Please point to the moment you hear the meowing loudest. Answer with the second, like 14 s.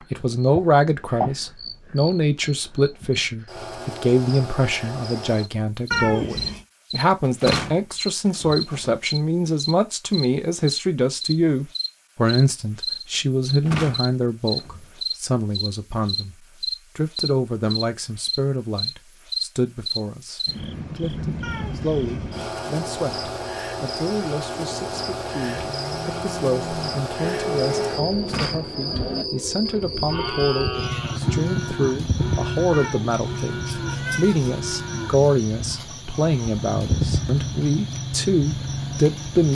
6 s.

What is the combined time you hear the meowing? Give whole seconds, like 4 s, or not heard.
4 s.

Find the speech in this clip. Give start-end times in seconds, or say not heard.
0.1-39.4.